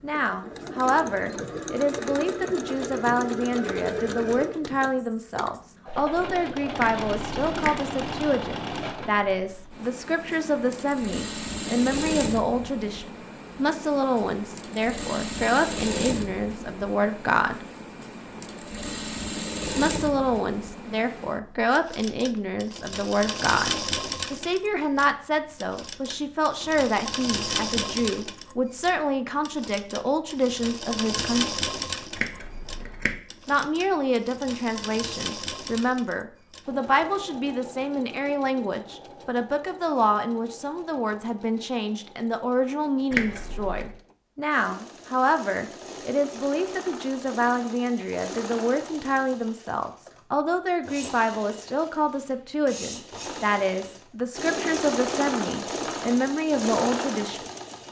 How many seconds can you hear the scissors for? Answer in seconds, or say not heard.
3 s.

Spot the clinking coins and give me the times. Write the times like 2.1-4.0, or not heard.
not heard.